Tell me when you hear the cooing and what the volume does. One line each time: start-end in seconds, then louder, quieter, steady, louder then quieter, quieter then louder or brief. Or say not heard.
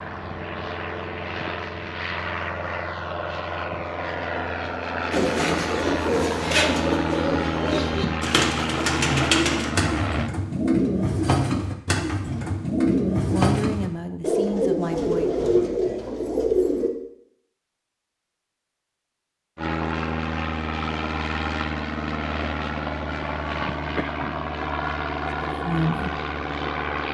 5.1-16.9 steady.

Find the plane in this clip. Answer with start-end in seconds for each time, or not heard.
0.0-10.3, 19.6-27.0.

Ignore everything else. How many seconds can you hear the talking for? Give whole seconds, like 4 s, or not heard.
3 s.